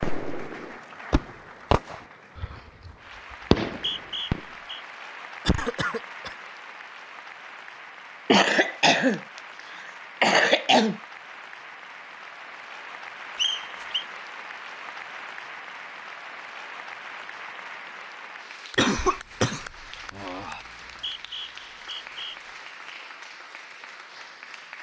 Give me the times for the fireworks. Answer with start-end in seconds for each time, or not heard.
0.0-4.5.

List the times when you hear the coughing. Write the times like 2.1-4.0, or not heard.
5.5-6.3, 8.2-9.2, 10.2-11.0, 18.8-20.6.